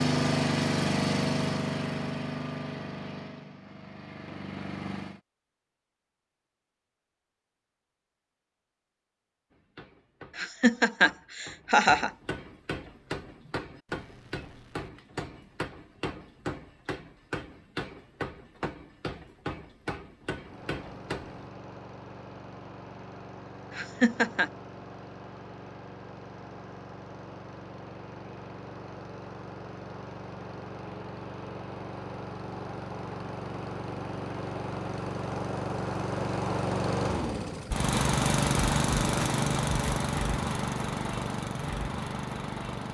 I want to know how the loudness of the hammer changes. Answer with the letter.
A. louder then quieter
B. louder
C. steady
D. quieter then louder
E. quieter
B.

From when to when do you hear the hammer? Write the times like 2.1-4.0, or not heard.
9.5-21.5.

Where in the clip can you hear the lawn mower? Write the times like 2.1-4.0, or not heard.
0.0-5.2, 20.4-42.9.